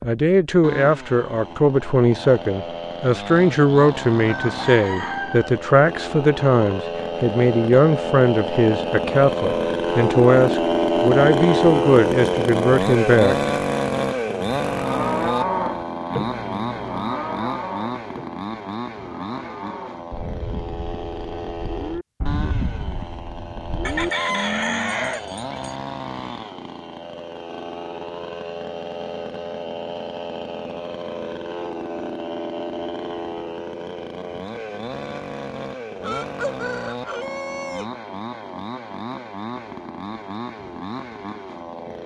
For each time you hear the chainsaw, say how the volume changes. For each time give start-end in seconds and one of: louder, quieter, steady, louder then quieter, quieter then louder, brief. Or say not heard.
0.0-42.0 louder then quieter.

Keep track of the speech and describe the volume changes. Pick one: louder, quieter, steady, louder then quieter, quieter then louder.
steady.